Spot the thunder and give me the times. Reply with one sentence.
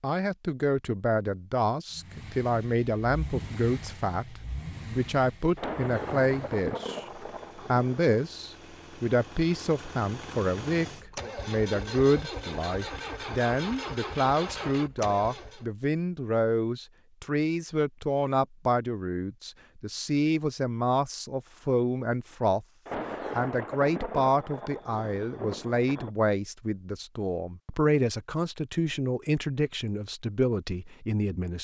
The thunder can be heard from 5.5 to 8.2 s and from 22.9 to 26.1 s.